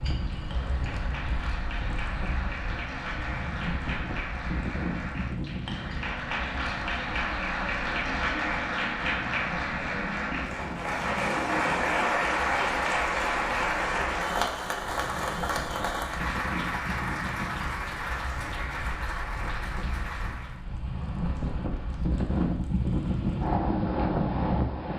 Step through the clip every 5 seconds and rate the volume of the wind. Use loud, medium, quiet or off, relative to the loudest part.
medium, medium, quiet, medium, loud.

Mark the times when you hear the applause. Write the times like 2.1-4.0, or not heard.
0.2-20.6.